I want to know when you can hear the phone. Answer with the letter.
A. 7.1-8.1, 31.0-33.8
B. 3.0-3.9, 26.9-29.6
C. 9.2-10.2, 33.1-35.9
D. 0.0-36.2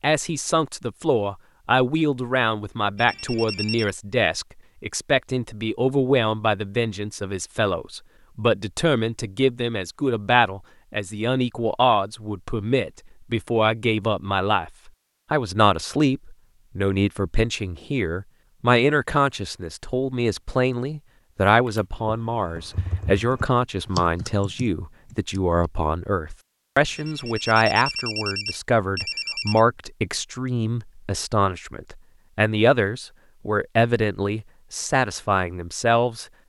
B.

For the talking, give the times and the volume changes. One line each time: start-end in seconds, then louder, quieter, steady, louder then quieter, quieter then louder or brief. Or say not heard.
0.0-36.2 steady.